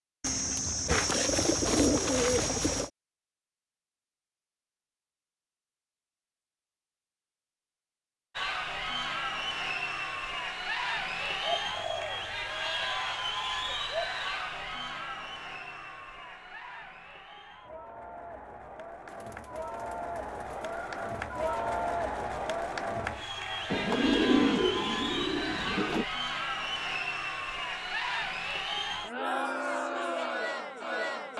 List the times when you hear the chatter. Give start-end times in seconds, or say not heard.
8.3-31.3.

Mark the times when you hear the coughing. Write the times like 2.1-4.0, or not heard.
not heard.